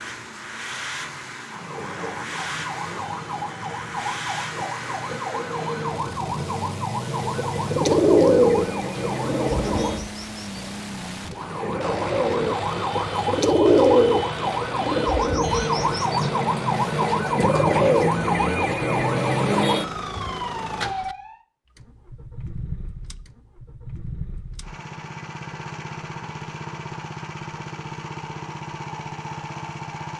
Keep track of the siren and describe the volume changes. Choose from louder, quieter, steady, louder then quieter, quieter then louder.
louder.